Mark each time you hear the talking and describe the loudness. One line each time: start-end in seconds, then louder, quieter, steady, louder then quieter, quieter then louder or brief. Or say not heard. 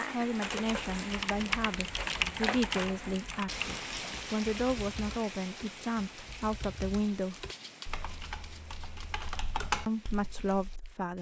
0.1-7.5 steady
9.8-11.1 brief.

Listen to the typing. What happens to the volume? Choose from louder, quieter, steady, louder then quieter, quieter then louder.
quieter then louder.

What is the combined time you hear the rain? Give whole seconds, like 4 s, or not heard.
11 s.